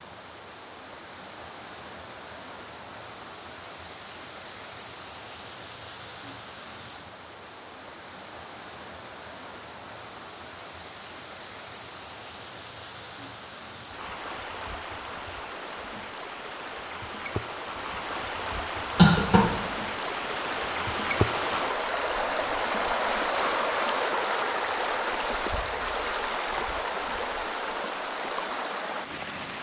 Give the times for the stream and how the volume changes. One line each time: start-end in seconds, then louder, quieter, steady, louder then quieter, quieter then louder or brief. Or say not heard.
0.0-29.5 louder.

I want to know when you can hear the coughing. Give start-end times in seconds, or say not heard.
18.9-19.5.